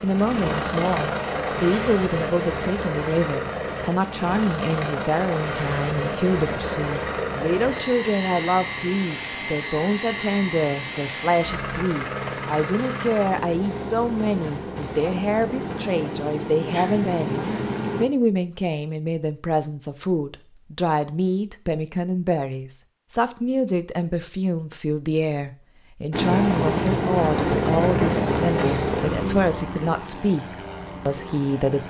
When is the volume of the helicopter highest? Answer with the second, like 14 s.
28 s.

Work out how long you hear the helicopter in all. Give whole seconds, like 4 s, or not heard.
24 s.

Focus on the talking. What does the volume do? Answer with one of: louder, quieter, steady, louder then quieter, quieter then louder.
steady.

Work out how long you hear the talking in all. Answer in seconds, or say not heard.
32 s.